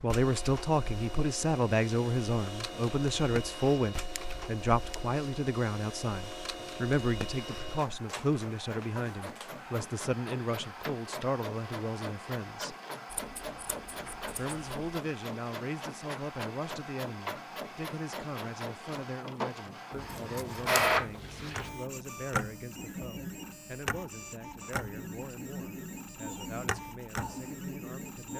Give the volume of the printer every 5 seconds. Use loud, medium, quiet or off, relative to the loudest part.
medium, medium, medium, medium, loud, medium.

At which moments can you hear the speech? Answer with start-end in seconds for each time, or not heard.
0.0-12.8, 14.3-28.3.